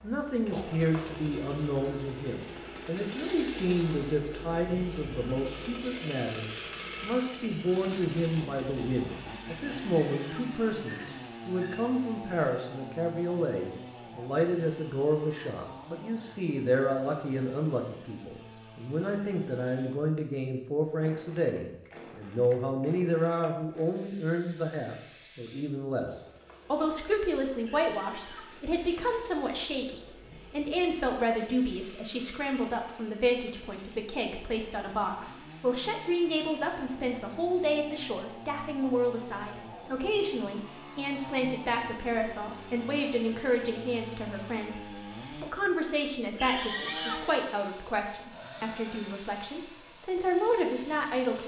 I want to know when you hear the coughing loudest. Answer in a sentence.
The loudest moment of the coughing is at 47 seconds.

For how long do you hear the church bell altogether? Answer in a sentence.
The church bell can't be heard in this clip.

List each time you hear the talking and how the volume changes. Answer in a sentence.
You can hear the talking from 0.0 to 26.1 s, at a steady volume; and from 26.7 to 51.4 s, at a steady volume.